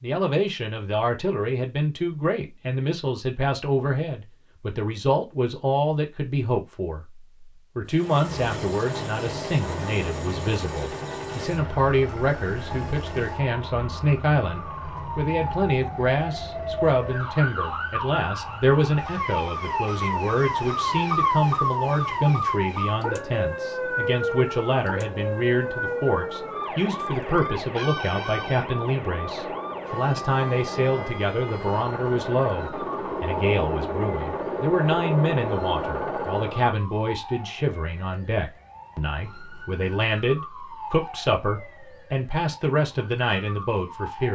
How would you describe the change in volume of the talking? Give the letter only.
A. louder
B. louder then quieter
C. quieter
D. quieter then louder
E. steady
E.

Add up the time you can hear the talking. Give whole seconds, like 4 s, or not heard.
44 s.